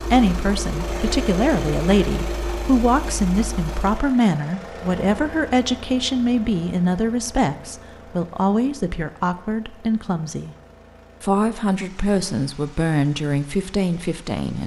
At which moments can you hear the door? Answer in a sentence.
You can't hear the door here.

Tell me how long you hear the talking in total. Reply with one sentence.
You can hear the talking for 14 seconds altogether.